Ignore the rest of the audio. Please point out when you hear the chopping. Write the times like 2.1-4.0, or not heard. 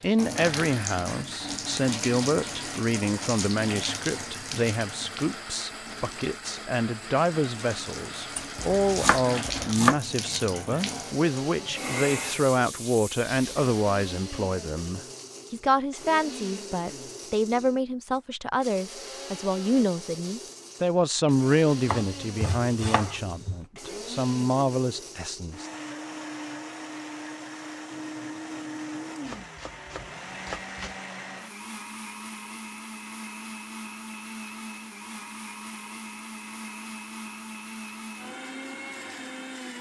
8.3-9.9, 21.9-23.6, 29.2-30.9.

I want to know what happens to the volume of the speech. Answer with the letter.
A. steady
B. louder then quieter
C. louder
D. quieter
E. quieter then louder
A.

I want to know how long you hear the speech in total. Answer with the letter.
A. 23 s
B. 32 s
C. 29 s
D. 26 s
D.